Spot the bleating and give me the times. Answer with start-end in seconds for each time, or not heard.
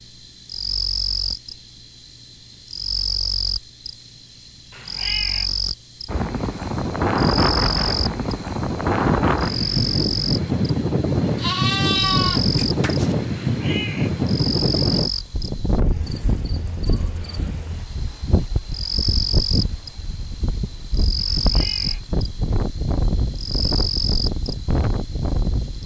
11.3-13.2.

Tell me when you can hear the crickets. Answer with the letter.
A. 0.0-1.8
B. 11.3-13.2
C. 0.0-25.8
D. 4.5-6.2
C.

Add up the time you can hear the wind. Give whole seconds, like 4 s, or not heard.
20 s.